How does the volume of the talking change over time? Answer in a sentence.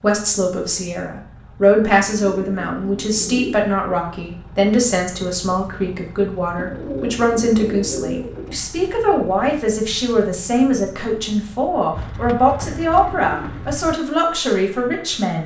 The loudness of the talking stays about the same.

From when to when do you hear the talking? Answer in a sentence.
The talking can be heard from 0.0 to 15.4 s.